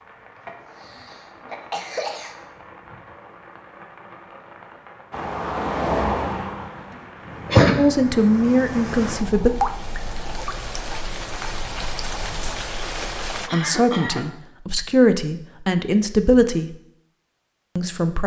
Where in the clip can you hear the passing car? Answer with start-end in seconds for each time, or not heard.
5.1-7.7.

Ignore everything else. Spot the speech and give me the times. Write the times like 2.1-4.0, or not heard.
7.8-9.5, 13.5-16.8, 17.8-18.2.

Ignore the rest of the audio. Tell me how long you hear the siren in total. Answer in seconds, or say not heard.
not heard.